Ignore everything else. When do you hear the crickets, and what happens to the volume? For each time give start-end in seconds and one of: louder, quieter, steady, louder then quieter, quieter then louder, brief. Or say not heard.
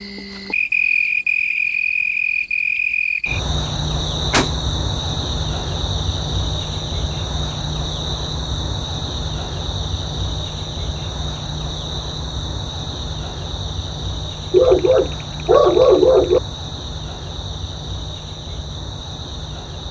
0.0-19.8 quieter.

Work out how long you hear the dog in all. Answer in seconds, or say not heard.
2 s.